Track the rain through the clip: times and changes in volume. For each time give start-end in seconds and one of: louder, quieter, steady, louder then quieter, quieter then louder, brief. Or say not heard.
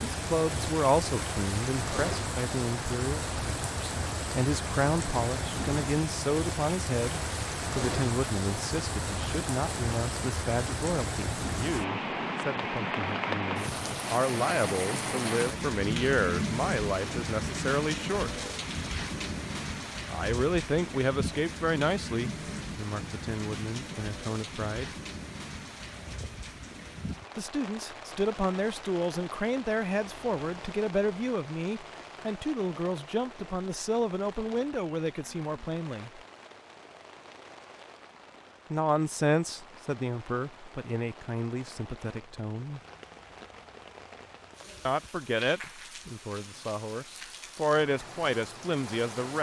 0.0-49.3 quieter.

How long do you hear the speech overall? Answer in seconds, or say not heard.
41 s.